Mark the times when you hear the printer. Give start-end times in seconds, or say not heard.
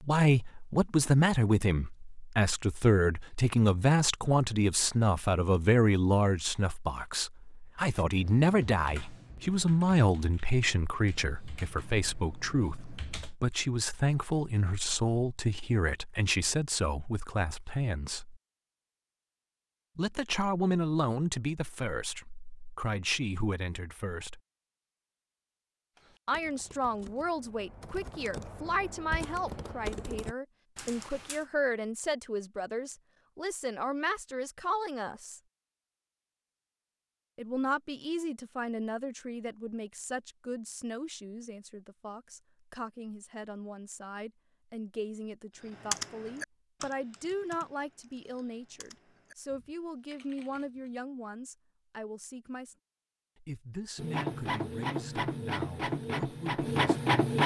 54.0-57.4.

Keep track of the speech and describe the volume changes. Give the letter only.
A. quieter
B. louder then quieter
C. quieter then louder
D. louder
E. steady
A.